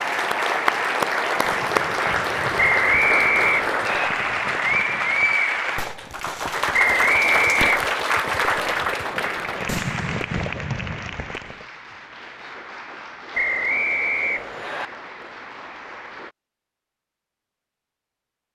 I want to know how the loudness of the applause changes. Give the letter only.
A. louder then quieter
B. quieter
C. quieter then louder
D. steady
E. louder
B.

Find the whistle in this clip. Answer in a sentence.
You can hear the whistle from 2.5 to 4.1 s, from 6.7 to 8.0 s and from 13.3 to 14.9 s.